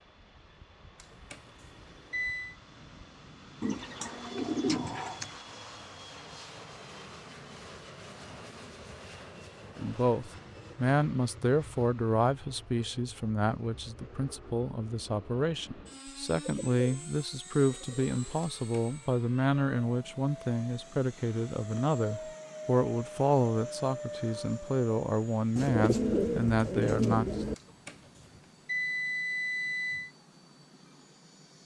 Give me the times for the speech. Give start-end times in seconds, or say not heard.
9.8-27.3.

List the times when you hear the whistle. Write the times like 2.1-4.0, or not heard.
not heard.